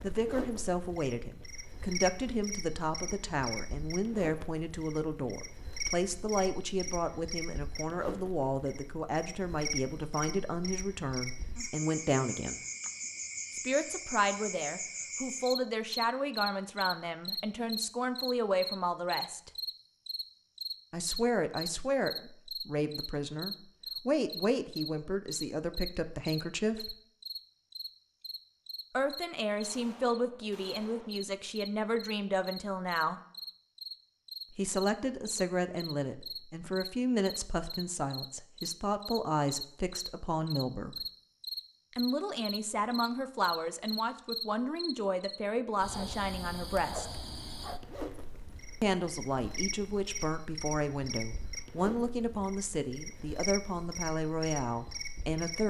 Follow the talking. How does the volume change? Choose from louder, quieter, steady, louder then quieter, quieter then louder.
steady.